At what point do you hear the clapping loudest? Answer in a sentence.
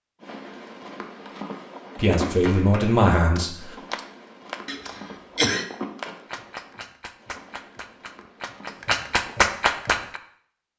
The volume of the clapping peaks at 10 seconds.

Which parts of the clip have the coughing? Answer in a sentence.
The coughing can be heard from 4.7 to 5.7 s.